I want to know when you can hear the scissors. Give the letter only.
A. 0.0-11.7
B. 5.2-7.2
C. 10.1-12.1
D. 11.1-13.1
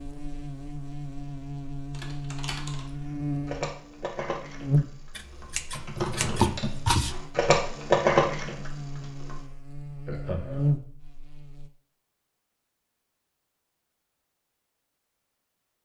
B.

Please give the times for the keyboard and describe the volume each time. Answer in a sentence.
You can hear the keyboard from 1.9 to 9.4 s, getting louder.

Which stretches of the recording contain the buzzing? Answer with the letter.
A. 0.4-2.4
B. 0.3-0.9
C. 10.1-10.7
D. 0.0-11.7
D.